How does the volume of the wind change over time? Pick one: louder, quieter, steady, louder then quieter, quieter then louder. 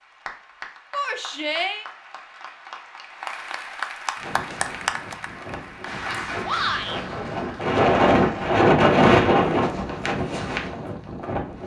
louder then quieter.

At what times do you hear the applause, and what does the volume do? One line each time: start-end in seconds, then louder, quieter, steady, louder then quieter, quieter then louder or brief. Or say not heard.
0.0-8.6 louder then quieter.